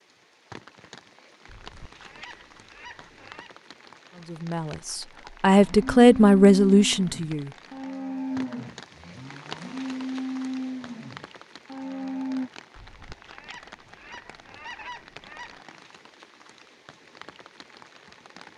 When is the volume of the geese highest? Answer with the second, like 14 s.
15 s.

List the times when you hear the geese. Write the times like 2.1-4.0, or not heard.
1.4-3.5, 12.8-15.7.